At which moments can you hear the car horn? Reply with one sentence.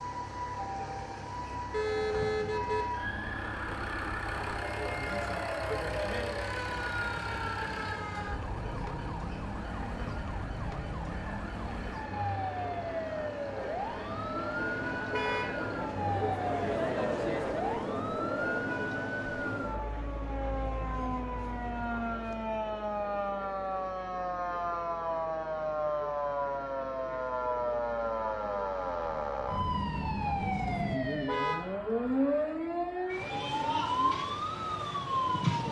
The car horn can be heard from 1.7 to 2.9 s, from 15.1 to 15.6 s and from 31.2 to 31.7 s.